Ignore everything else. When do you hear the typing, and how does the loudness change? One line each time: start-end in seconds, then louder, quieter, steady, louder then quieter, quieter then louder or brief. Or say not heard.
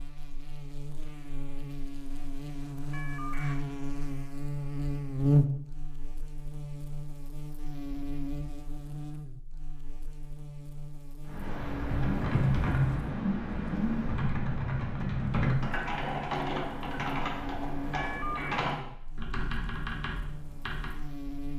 11.2-21.0 quieter.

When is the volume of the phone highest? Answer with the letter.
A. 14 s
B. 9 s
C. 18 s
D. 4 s
C.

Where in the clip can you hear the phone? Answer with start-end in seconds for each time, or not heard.
2.9-3.5, 17.9-18.6.